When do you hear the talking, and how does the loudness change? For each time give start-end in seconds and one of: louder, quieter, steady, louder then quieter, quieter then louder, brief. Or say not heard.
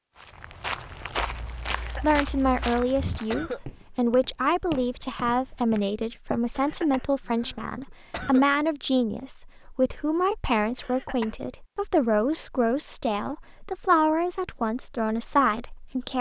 2.0-16.1 steady.